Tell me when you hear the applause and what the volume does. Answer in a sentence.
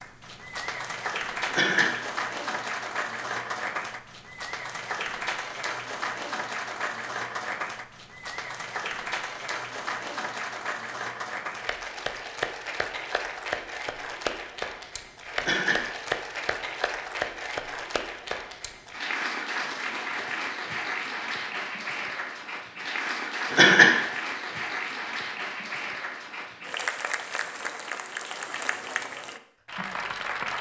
The applause can be heard from 0.0 to 30.5 s, at a steady volume.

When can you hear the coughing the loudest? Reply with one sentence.
The loudest moment of the coughing is at 24 seconds.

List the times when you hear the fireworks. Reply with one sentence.
You can't hear the fireworks here.